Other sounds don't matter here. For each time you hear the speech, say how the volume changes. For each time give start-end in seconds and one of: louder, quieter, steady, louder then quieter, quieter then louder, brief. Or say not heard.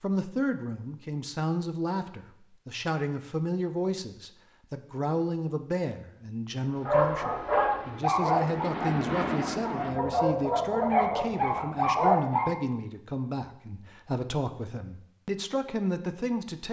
0.0-16.6 steady.